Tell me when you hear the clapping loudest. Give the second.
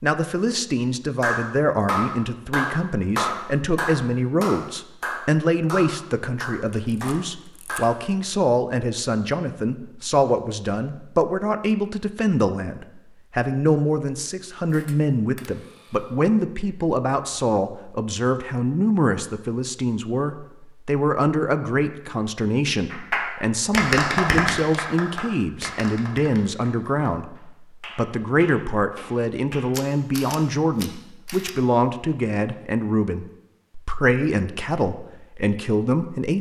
24 s.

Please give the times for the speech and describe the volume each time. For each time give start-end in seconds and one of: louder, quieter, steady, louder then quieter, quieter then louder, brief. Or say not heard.
0.0-36.3 steady.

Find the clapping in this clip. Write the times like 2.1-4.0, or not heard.
1.2-8.0, 22.9-29.7.